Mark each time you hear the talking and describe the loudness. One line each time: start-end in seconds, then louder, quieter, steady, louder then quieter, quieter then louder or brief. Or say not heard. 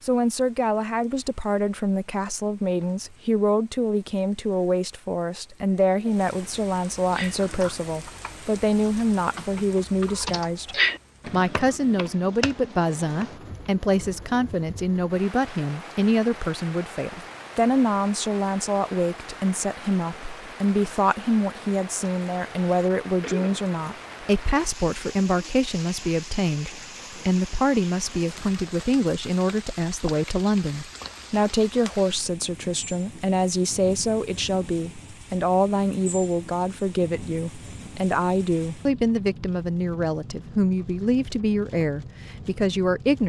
0.0-43.2 steady.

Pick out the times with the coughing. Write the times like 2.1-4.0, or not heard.
23.2-23.9.